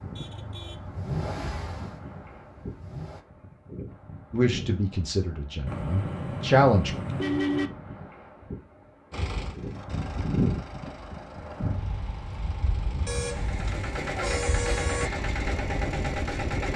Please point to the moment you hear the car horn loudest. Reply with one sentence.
The loudest moment of the car horn is at 7 seconds.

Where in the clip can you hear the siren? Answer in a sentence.
The siren can't be heard in this clip.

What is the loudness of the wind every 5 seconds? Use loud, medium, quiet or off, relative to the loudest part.
medium, medium, loud, loud.